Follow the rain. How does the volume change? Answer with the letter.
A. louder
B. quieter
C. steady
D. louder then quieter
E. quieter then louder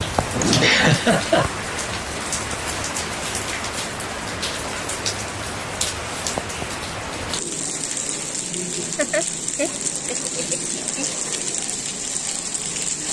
C.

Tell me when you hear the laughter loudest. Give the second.
1 s.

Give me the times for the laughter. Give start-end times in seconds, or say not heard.
0.3-1.5, 8.9-11.1.